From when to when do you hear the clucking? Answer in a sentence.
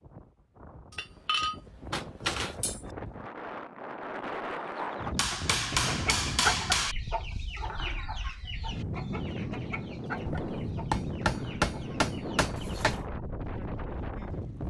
The clucking can be heard from 4.6 to 13.1 s.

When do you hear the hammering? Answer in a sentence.
You can hear the hammering from 0.9 to 2.9 s, from 5.2 to 7.0 s and from 10.2 to 13.1 s.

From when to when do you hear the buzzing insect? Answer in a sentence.
You can't hear the buzzing insect here.